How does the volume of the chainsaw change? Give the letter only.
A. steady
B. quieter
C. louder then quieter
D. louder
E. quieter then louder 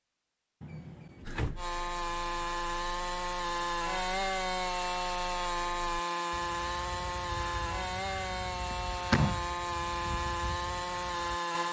A.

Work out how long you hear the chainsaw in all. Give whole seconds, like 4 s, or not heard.
10 s.